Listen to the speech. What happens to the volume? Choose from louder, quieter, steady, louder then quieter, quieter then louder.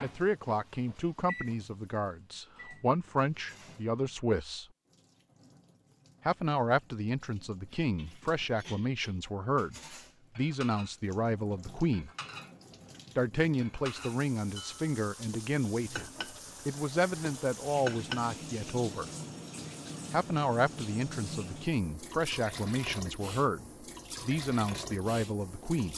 steady.